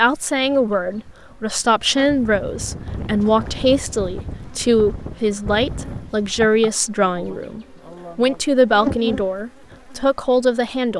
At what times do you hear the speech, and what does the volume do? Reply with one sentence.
You can hear the speech from 0.0 to 10.9 s, at a steady volume.